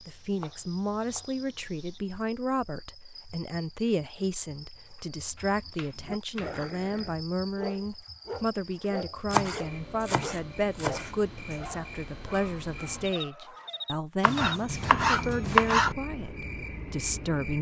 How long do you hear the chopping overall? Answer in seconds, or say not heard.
7 s.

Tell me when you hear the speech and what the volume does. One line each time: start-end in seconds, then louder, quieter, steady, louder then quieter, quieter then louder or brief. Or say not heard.
0.1-17.5 steady.